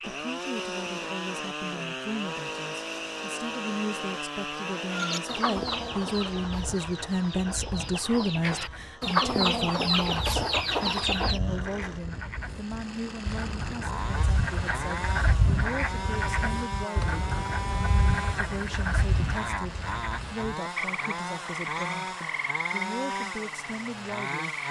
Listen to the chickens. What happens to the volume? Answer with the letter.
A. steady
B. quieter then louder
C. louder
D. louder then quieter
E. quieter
B.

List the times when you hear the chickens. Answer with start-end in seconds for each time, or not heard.
4.9-11.4.